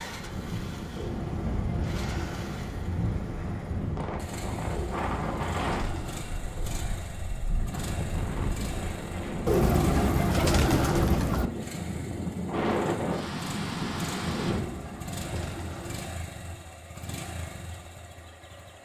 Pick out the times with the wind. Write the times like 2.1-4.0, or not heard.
0.0-14.7.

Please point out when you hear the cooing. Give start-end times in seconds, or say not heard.
0.9-2.6, 4.7-6.3, 9.4-11.5, 14.3-16.2.